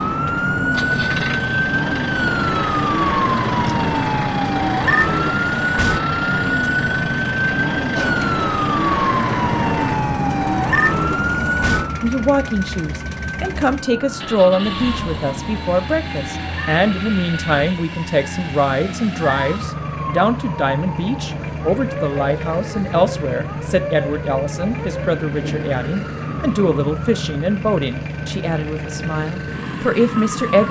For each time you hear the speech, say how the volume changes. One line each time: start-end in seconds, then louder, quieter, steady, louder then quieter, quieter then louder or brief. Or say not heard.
12.0-30.6 steady.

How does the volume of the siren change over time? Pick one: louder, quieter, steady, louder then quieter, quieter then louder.
quieter.